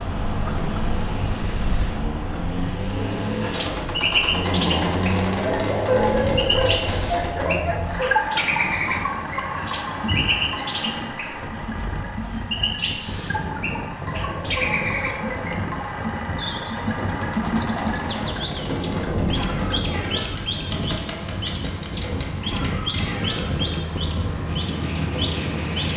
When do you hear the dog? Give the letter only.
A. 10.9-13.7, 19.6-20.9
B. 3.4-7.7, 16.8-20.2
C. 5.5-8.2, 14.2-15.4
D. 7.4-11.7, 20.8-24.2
C.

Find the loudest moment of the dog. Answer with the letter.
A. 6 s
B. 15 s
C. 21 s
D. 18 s
A.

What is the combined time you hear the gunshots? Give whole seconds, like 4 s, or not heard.
8 s.